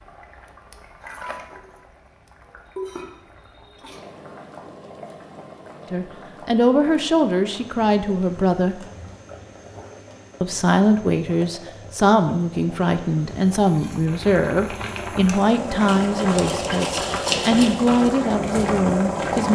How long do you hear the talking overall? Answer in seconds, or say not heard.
12 s.